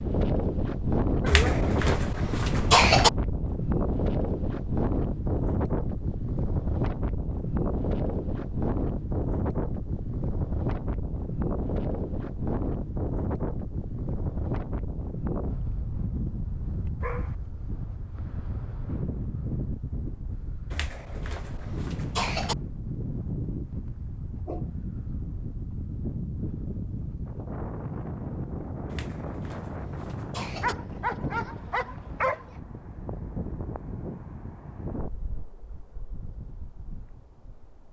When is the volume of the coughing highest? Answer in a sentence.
The volume of the coughing peaks at 3 seconds.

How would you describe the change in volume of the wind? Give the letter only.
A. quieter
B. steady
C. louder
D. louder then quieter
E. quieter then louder
A.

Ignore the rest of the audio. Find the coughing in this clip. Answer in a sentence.
The coughing can be heard from 1.2 to 3.1 s, from 20.7 to 22.6 s and from 28.9 to 30.8 s.